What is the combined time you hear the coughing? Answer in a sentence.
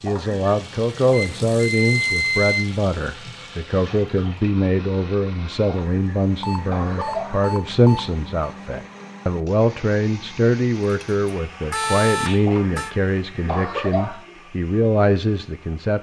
You can hear the coughing for 5 seconds altogether.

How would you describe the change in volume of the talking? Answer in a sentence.
The loudness of the talking stays about the same.